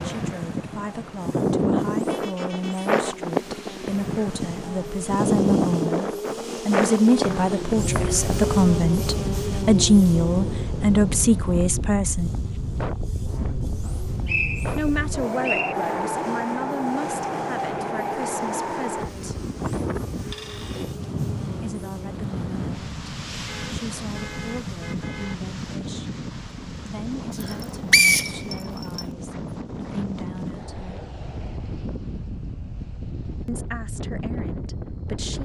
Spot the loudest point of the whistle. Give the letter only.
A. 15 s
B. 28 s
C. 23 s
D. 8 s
B.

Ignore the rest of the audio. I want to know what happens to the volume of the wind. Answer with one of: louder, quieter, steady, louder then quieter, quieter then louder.
quieter.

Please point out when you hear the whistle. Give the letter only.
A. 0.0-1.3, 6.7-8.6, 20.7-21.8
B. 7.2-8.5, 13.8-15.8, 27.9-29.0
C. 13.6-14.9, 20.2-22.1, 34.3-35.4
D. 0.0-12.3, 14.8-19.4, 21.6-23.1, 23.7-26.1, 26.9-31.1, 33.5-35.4
B.